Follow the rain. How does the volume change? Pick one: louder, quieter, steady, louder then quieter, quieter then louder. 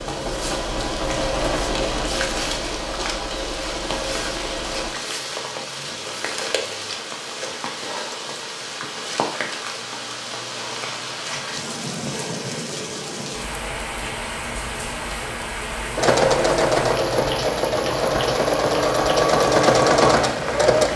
steady.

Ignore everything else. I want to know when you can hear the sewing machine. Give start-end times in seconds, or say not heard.
0.0-4.9, 15.9-20.9.